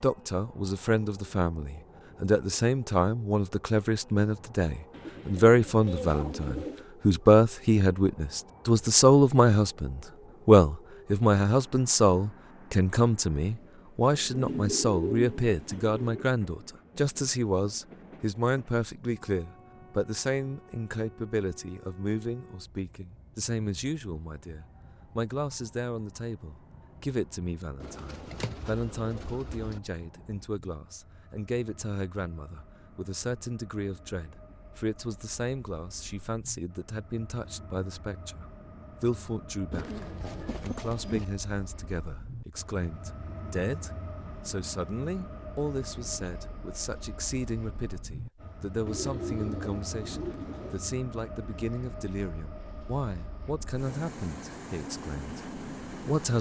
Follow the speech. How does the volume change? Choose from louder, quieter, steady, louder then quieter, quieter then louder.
quieter.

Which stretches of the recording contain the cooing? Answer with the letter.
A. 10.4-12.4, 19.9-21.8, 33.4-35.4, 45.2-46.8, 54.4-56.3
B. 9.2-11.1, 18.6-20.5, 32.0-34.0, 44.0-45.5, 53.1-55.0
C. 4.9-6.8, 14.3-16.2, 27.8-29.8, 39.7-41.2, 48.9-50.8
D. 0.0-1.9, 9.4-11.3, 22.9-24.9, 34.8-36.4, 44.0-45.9
C.